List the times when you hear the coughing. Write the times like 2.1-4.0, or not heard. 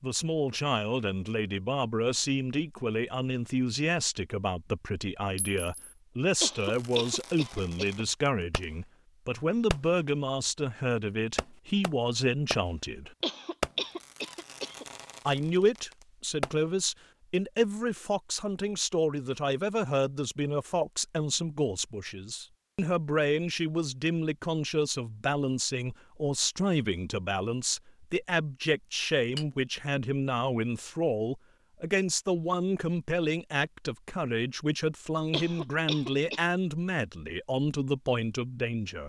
6.4-8.1, 13.2-14.8, 35.3-36.5.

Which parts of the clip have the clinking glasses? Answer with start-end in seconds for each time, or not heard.
5.3-6.0.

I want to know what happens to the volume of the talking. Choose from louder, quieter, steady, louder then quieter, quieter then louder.
steady.